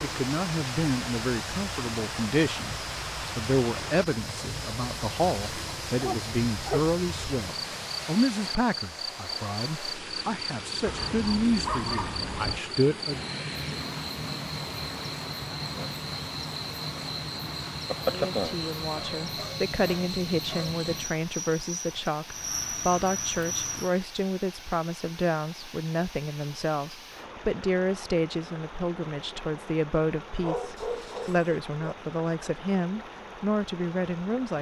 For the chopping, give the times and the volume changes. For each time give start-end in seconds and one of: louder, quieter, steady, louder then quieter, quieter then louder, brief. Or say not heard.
not heard.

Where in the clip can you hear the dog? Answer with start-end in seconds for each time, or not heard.
6.0-6.9, 10.8-12.6, 18.9-20.8, 30.4-31.9.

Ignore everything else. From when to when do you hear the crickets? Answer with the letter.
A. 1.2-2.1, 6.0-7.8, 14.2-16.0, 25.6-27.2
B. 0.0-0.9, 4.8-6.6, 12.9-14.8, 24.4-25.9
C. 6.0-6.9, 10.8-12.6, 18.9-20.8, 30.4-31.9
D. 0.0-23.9
D.